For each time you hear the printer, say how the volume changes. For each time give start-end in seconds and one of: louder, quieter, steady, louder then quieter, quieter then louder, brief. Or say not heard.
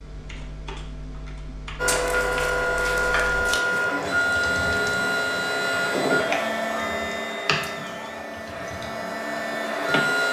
1.8-10.2 quieter.